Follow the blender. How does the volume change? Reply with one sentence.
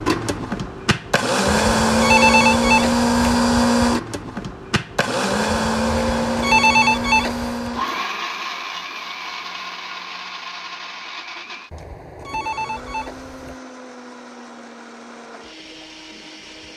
The loudness of the blender goes down.